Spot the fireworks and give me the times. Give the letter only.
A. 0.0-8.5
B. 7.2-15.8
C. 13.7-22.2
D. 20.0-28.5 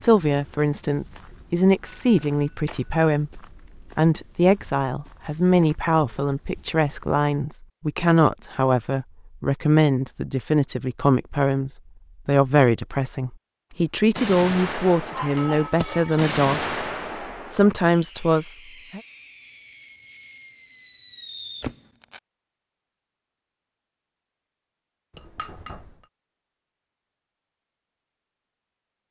C.